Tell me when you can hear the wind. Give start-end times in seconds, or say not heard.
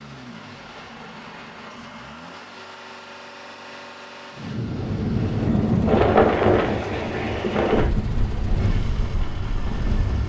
4.3-10.2.